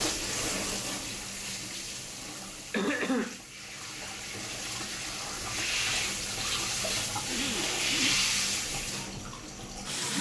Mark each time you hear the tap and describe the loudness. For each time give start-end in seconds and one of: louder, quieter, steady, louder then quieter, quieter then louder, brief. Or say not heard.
0.0-10.1 quieter then louder.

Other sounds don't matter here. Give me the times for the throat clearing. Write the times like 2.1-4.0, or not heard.
2.7-3.4, 7.2-8.2.